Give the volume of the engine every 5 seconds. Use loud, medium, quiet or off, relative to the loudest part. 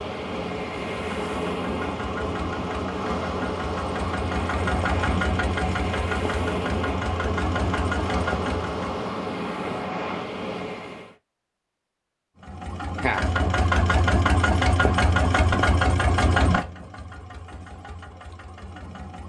medium, medium, loud, loud.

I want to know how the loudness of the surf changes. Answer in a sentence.
The loudness of the surf stays about the same.